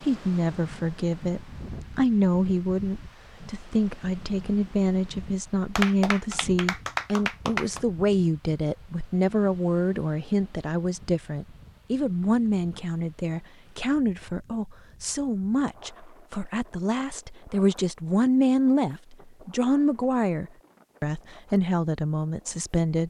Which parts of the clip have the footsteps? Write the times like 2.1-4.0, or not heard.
not heard.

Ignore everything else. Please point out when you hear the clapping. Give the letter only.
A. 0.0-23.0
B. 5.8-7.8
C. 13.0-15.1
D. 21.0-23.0
B.